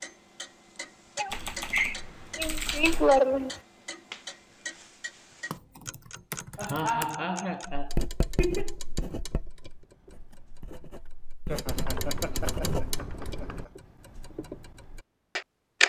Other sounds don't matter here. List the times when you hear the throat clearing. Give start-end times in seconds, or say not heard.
not heard.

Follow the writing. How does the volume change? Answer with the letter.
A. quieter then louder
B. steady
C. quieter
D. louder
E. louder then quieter
A.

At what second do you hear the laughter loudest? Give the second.
3 s.